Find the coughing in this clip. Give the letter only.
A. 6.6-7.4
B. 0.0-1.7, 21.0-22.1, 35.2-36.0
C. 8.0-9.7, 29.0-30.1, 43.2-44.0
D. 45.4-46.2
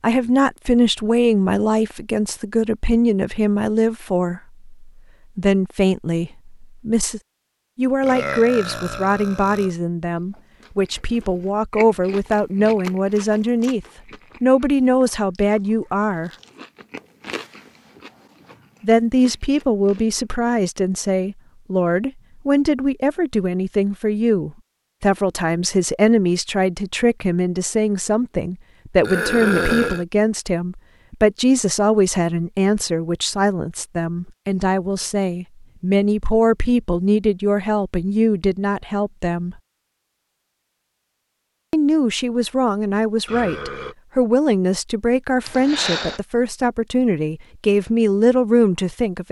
D.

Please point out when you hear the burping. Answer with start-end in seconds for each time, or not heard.
8.0-9.7, 29.0-30.1, 43.2-44.0.